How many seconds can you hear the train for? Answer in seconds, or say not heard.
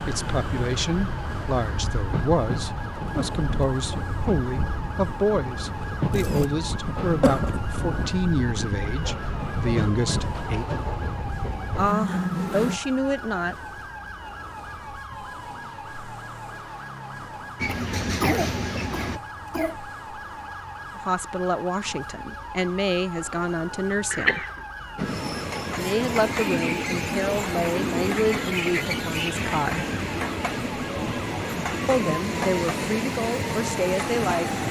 24 s.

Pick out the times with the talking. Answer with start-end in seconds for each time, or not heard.
0.1-10.7, 11.8-13.6, 20.9-24.4, 25.8-29.8, 31.9-34.6.